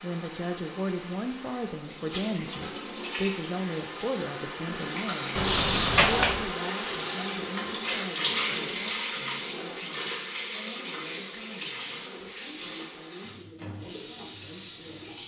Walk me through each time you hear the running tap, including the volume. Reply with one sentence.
You can hear the running tap from 0.0 to 15.2 s, getting louder then quieter.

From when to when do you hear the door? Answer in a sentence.
The door can be heard from 5.3 to 6.5 s.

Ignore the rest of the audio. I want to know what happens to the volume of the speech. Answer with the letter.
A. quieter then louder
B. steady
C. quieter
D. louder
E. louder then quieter
C.